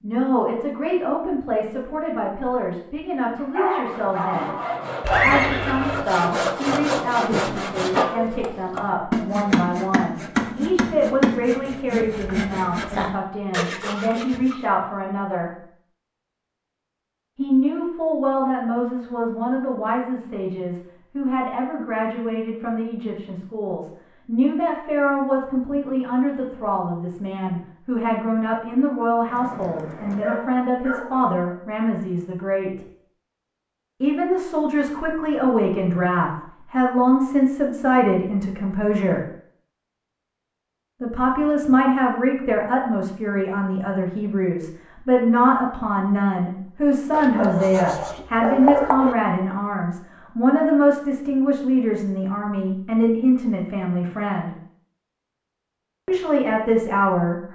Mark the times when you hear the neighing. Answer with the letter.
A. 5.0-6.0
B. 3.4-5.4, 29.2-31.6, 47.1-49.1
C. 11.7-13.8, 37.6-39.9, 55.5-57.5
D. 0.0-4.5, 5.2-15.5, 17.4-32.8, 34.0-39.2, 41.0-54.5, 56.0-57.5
A.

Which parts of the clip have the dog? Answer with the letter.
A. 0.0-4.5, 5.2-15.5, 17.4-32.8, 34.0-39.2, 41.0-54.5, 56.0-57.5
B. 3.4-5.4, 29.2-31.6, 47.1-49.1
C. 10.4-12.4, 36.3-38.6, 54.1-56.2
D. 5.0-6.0
B.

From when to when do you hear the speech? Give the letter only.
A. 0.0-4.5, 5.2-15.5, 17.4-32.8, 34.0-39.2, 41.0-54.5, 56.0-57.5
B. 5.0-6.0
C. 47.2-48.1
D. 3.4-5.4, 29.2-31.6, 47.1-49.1
A.